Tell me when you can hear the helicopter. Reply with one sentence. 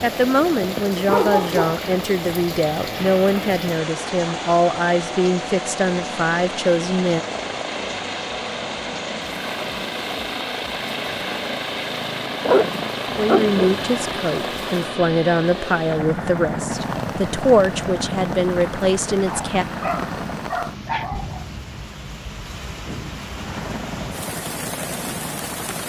You can hear the helicopter from 0.0 to 20.6 s and from 23.2 to 25.8 s.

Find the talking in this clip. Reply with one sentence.
You can hear the talking from 0.0 to 7.2 s and from 13.1 to 19.6 s.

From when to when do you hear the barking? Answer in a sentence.
The barking can be heard from 1.1 to 1.9 s, from 12.4 to 13.9 s and from 19.2 to 21.4 s.